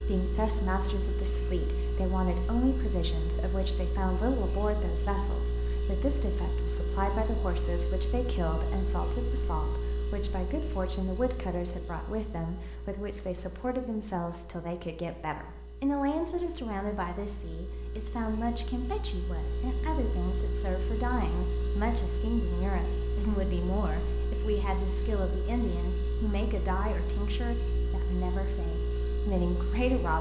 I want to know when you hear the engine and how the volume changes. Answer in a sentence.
The engine can be heard from 0.0 to 30.1 s, getting quieter then louder.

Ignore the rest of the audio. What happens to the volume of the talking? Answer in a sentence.
The volume of the talking stays about the same.